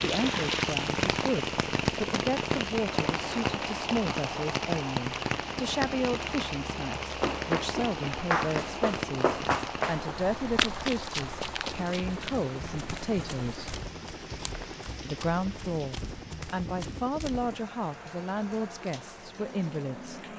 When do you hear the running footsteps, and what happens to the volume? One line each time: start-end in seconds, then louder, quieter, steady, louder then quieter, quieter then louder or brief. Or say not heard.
7.2-17.5 quieter.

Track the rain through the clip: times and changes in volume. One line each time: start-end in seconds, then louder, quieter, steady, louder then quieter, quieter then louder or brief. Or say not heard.
0.0-20.3 quieter.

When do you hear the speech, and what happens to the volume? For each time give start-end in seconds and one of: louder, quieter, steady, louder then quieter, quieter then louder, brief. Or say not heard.
0.0-13.8 steady
15.1-20.3 steady.